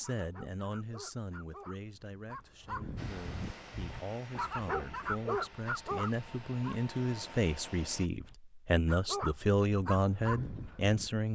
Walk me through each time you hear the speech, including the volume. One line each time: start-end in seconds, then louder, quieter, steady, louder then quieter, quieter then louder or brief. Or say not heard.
0.0-11.3 louder.